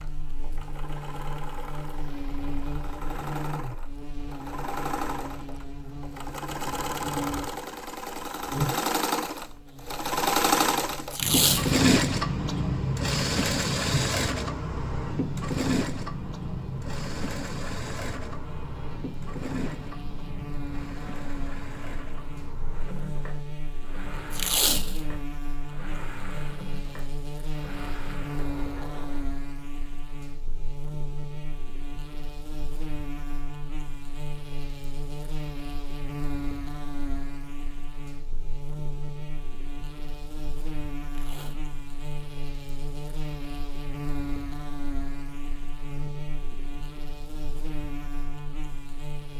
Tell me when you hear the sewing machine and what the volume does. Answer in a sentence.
You can hear the sewing machine from 0.0 to 29.3 s, getting louder then quieter.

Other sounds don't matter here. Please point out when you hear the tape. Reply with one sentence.
The tape can be heard from 11.1 to 11.8 s, from 24.3 to 25.0 s and from 41.0 to 41.6 s.